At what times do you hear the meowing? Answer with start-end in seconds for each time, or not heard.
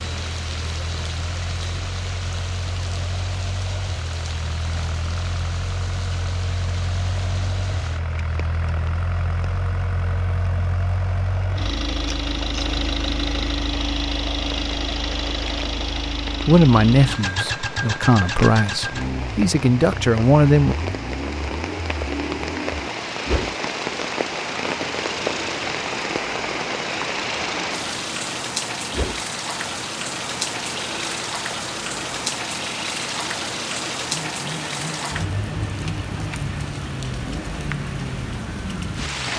not heard.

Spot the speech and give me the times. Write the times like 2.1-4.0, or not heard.
16.4-20.8.